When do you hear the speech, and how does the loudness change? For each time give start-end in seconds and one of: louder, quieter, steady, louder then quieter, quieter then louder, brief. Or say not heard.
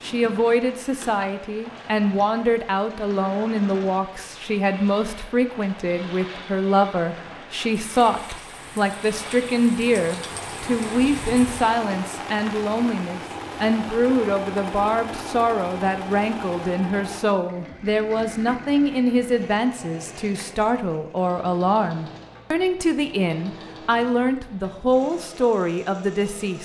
0.0-26.5 steady.